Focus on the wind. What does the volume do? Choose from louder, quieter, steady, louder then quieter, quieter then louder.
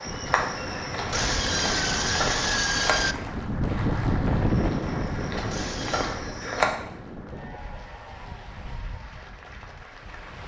louder then quieter.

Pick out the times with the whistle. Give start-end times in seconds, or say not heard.
not heard.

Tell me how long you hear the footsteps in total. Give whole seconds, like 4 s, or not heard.
5 s.